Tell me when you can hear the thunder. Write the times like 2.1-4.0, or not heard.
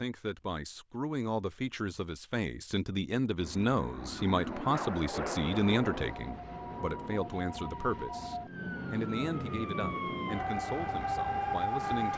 4.7-7.3.